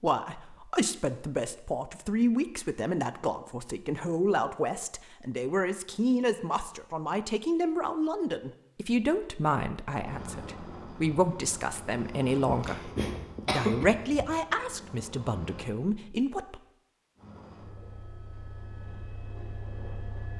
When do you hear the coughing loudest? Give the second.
14 s.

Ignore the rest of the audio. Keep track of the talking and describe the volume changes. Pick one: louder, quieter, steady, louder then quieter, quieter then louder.
steady.